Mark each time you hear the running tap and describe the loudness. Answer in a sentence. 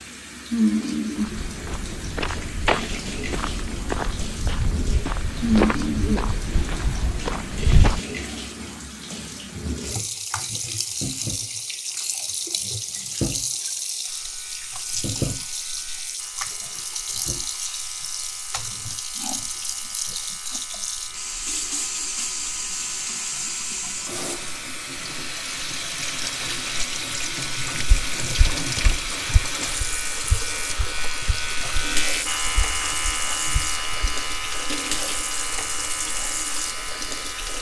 You can hear the running tap from 0.0 to 37.5 s, at a steady volume.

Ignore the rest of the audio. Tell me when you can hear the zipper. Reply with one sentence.
The zipper can't be heard in this clip.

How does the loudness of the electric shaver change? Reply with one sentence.
The loudness of the electric shaver goes up.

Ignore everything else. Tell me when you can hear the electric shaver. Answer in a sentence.
The electric shaver can be heard from 14.1 to 37.5 s.